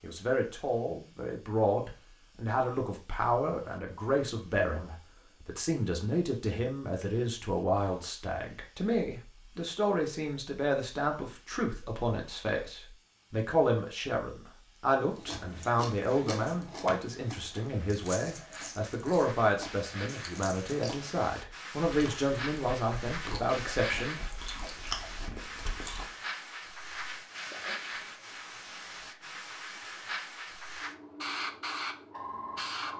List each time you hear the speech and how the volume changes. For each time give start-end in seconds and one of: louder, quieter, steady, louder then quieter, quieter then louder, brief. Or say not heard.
0.0-24.6 steady.